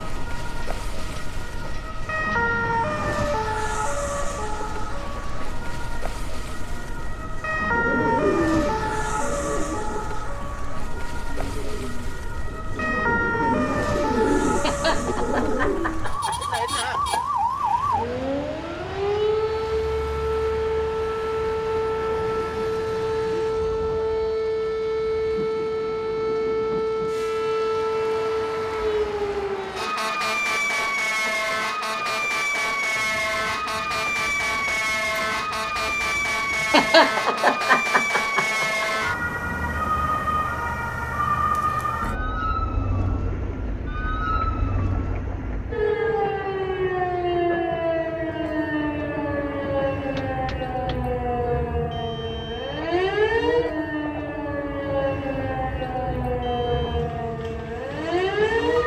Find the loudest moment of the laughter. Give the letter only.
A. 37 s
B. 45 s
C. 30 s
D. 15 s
A.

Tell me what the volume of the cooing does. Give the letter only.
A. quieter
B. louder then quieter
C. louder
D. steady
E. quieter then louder
E.